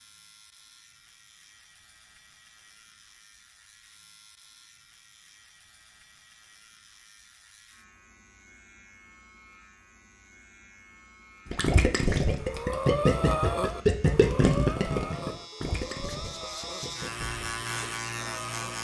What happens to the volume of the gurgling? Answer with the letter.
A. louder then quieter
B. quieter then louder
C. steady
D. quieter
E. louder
D.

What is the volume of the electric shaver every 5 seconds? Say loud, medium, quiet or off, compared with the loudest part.
quiet, quiet, quiet, loud.